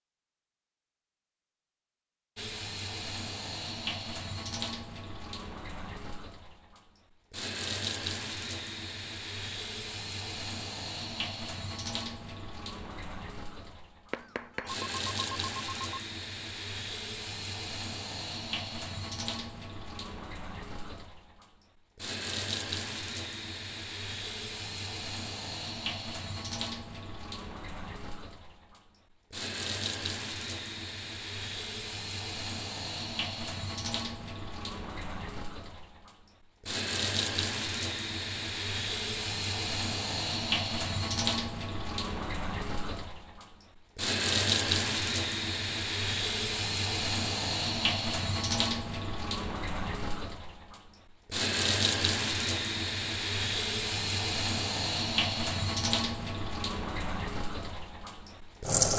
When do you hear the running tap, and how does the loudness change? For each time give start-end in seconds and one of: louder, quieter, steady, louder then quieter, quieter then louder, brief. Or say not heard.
2.4-58.9 louder.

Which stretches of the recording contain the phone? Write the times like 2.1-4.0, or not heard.
14.1-16.0.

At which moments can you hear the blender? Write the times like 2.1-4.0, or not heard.
not heard.